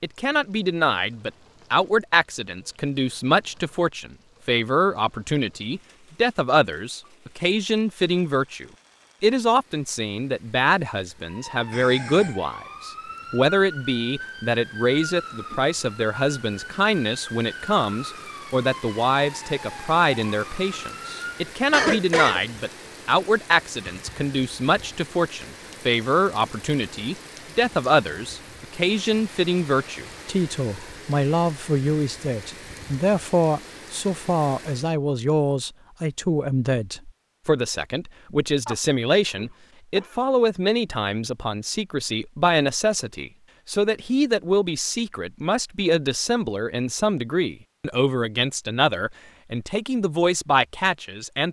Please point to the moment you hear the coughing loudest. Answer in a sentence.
The volume of the coughing peaks at 22 seconds.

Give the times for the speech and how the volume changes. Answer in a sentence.
You can hear the speech from 0.0 to 51.4 s, at a steady volume.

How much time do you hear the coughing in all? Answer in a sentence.
You can hear the coughing for 3 seconds altogether.